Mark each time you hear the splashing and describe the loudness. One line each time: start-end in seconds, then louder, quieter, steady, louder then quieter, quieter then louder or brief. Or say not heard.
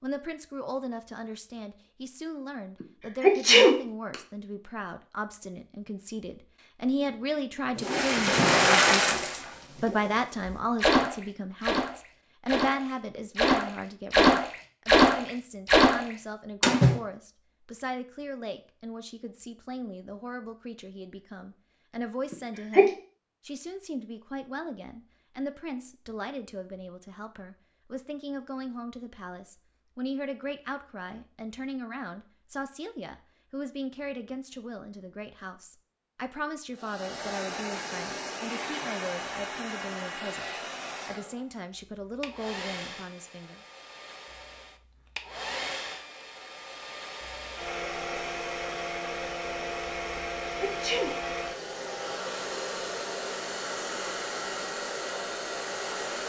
7.8-17.0 quieter then louder.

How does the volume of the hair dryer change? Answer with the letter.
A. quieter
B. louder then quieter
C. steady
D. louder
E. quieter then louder
E.